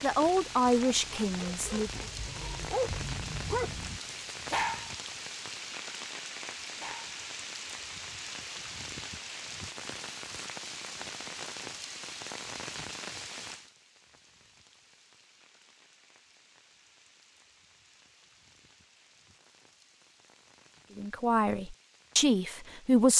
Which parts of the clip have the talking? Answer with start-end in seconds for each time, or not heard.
0.0-1.9, 20.9-23.1.